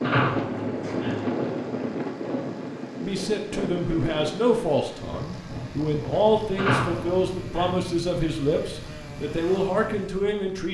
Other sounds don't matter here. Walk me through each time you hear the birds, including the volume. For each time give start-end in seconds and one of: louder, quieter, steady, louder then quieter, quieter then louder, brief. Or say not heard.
not heard.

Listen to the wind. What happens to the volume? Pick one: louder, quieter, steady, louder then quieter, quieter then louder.
quieter.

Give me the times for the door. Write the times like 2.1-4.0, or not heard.
0.0-1.2, 6.5-7.8.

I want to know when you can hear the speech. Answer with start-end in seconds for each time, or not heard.
3.0-10.6.